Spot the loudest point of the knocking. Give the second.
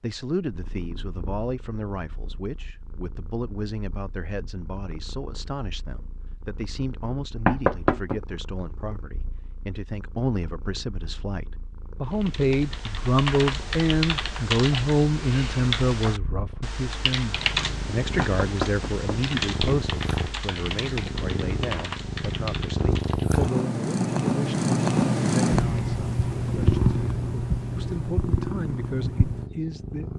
8 s.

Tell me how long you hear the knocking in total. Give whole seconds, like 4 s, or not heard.
2 s.